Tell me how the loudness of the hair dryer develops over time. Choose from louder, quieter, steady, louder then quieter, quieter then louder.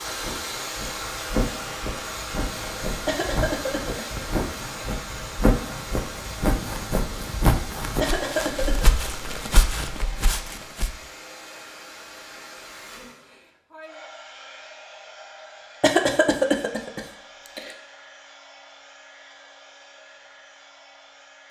quieter.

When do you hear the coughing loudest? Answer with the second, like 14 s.
16 s.